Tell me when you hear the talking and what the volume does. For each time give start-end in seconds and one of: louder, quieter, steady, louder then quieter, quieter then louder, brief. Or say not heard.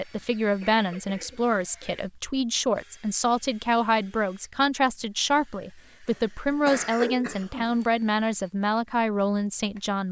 0.0-10.0 steady.